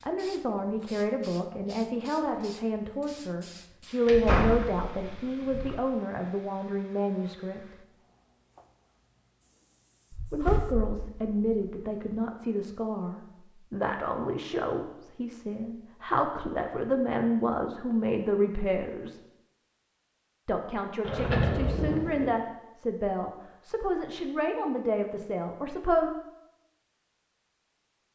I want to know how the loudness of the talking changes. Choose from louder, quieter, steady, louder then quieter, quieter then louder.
steady.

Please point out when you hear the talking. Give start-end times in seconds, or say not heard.
0.0-7.8, 10.3-19.2, 20.4-26.1.